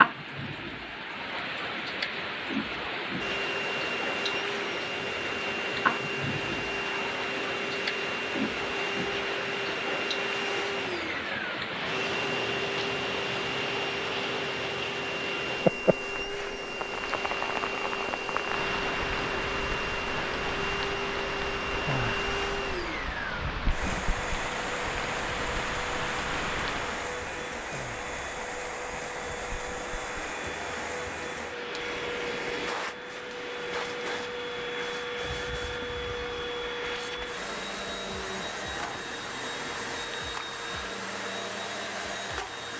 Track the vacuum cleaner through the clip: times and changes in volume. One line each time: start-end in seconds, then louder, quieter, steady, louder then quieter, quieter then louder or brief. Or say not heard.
3.1-42.7 steady.